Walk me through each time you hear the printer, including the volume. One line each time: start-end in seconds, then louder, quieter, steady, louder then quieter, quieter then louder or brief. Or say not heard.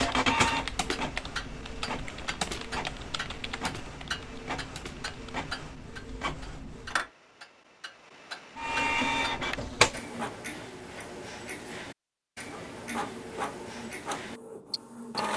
0.0-7.0 quieter
8.6-10.3 brief
12.5-15.3 brief.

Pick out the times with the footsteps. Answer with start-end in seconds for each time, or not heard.
not heard.